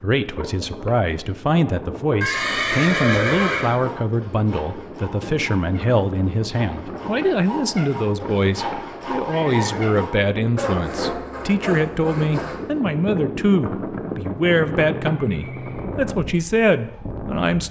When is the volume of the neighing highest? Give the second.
3 s.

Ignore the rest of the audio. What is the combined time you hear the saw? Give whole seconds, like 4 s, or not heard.
9 s.